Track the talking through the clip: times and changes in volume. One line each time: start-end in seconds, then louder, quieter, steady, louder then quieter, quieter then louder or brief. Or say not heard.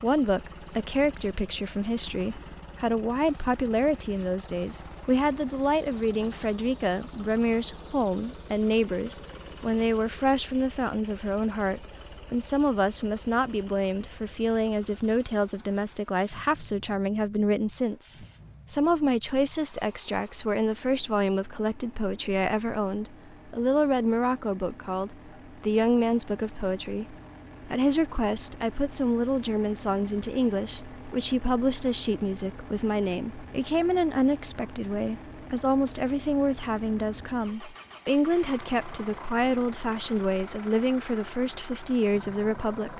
0.0-42.9 steady.